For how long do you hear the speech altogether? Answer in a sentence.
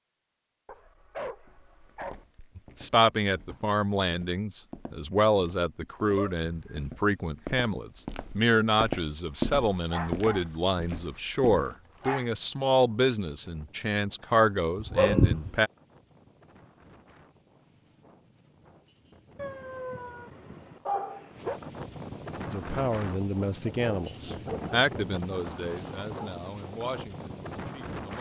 You can hear the speech for 19 seconds altogether.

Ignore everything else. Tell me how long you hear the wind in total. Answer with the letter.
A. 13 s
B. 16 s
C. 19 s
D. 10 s
B.